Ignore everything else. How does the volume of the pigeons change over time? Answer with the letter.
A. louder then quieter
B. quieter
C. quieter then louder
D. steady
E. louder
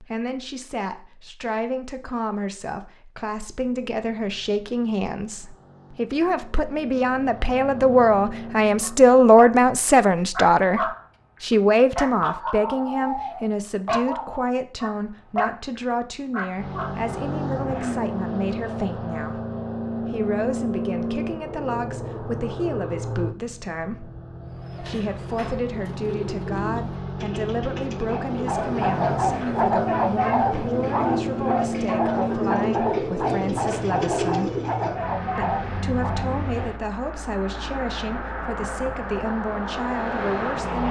E.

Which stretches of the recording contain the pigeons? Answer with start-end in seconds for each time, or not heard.
24.6-35.1.